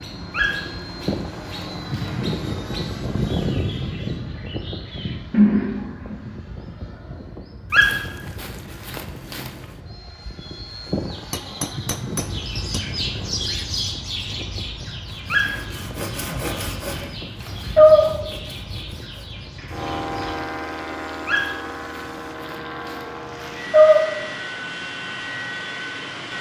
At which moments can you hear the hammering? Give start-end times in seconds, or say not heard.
11.3-12.8.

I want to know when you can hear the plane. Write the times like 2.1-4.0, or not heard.
0.0-26.3.